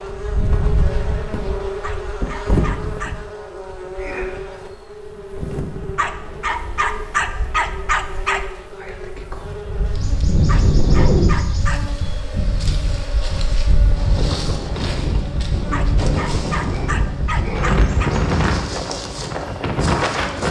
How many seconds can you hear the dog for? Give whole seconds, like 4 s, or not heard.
8 s.